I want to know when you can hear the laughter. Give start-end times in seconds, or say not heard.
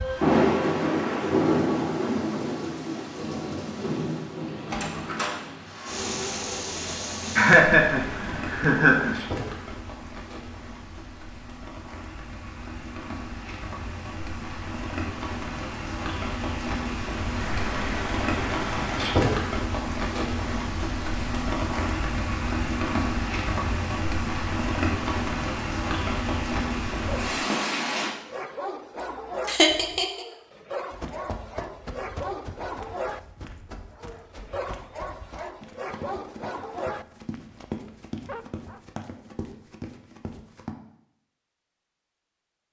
6.9-9.2, 29.4-30.2.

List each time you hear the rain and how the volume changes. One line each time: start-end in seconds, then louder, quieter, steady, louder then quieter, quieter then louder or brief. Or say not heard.
0.0-28.1 quieter then louder.